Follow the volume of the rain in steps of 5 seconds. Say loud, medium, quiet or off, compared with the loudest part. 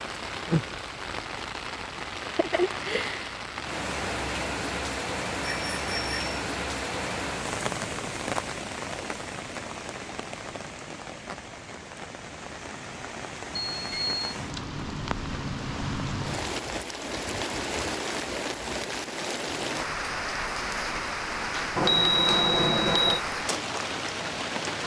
loud, loud, medium, loud, loud.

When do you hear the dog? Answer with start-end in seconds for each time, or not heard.
not heard.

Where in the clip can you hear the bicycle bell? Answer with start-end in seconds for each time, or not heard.
5.4-6.4, 13.7-14.2, 21.8-23.2.